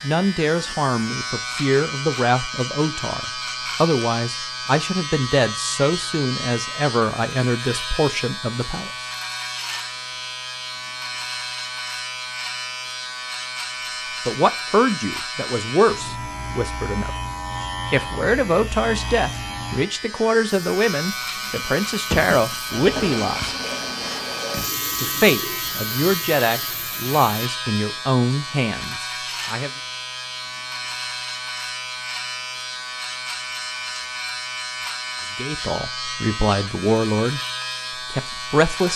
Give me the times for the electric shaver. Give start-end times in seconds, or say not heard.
0.0-38.9.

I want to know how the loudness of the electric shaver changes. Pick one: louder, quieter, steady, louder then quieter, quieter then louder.
steady.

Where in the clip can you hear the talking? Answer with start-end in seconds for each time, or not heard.
0.0-9.1, 14.2-17.1, 17.9-23.6, 25.0-29.7, 35.4-37.4, 38.1-38.9.